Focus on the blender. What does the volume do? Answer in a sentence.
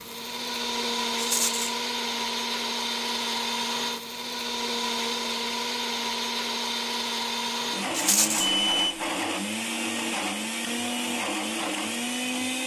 The volume of the blender stays about the same.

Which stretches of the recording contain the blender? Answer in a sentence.
You can hear the blender from 0.0 to 12.6 s.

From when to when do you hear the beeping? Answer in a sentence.
The beeping can be heard from 8.4 to 9.0 s.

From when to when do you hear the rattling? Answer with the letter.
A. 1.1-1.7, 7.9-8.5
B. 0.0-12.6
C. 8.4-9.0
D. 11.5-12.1
A.